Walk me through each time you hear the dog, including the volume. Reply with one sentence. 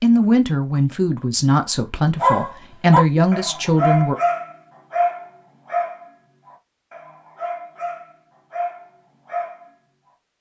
The dog can be heard from 2.1 to 9.7 s, getting quieter.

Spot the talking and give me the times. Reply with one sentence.
The talking can be heard from 0.0 to 4.2 s.